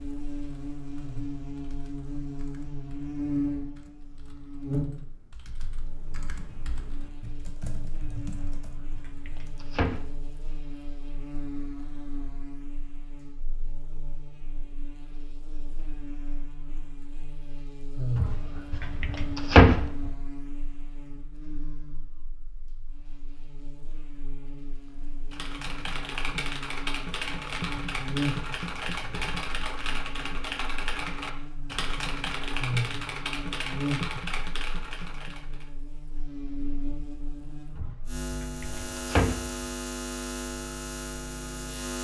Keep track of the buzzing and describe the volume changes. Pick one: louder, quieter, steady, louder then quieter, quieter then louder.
quieter then louder.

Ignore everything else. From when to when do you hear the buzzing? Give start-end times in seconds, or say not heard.
0.0-42.0.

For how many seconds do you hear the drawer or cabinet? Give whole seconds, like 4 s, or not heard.
6 s.